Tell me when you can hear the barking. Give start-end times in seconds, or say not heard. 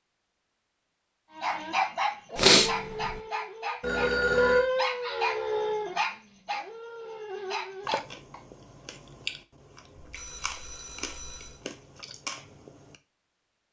1.4-8.4.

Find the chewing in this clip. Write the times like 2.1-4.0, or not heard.
7.8-12.9.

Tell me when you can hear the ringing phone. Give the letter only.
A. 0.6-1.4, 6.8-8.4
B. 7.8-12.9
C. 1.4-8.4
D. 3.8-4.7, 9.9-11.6
D.